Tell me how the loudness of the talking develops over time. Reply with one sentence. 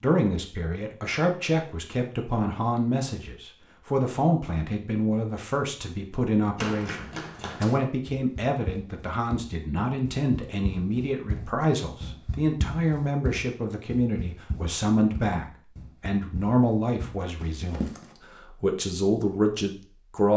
The volume of the talking stays about the same.